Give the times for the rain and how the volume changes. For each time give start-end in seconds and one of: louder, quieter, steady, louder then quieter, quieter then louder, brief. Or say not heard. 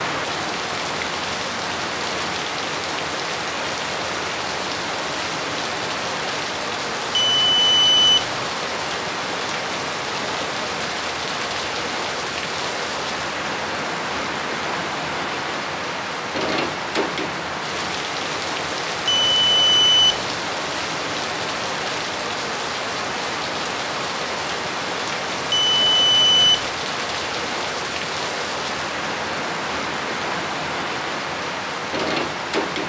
0.0-32.8 steady.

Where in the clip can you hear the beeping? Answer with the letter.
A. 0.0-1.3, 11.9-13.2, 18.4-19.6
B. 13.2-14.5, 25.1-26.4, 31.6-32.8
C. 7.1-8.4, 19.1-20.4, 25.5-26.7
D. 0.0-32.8
C.